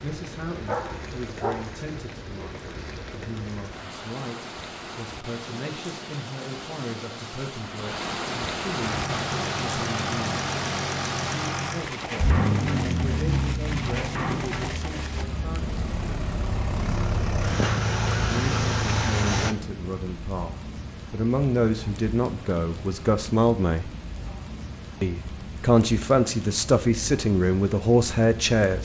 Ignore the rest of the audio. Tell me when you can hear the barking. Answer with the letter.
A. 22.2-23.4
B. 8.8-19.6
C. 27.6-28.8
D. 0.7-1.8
D.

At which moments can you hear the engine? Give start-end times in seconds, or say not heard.
8.8-19.6.